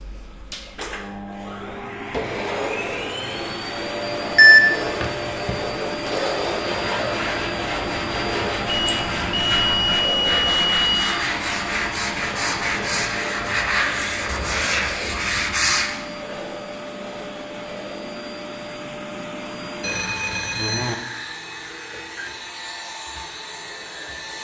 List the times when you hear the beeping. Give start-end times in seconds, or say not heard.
4.3-5.5, 8.7-11.1, 19.8-20.9.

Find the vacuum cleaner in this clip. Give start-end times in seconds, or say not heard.
0.0-24.3.